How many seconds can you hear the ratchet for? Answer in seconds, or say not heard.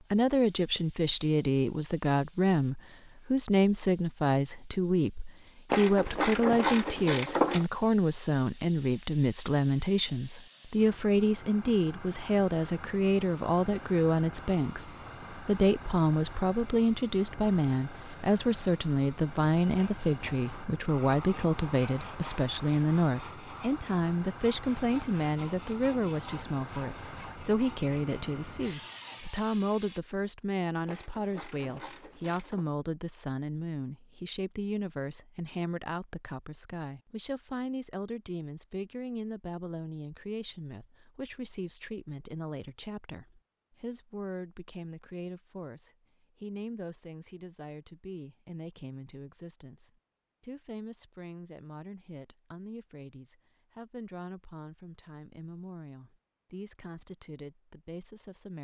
4 s.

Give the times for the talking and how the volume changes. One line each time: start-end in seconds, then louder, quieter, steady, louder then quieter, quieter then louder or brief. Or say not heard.
0.1-58.5 quieter.